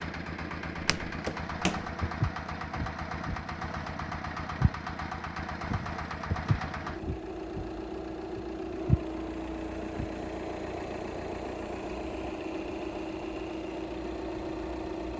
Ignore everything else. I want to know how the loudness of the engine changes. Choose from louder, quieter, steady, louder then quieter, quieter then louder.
steady.